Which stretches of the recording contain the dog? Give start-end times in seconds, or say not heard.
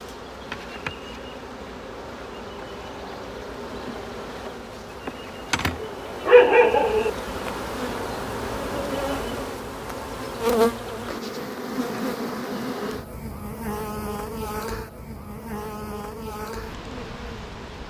5.8-7.1.